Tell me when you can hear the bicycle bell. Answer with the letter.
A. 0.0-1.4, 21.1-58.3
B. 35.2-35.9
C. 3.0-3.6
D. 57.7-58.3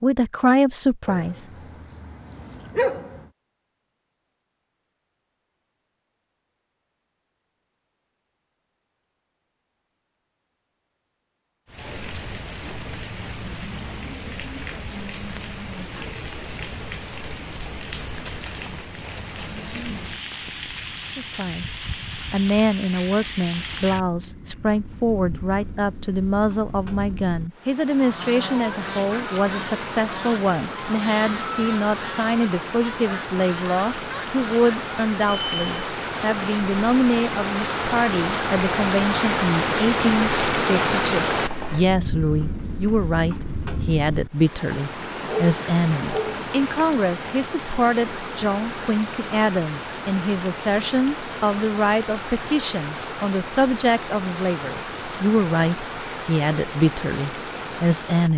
B.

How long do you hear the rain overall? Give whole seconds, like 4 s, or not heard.
47 s.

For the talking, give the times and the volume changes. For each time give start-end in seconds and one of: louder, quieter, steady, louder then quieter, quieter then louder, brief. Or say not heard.
0.0-1.4 brief
21.1-58.3 steady.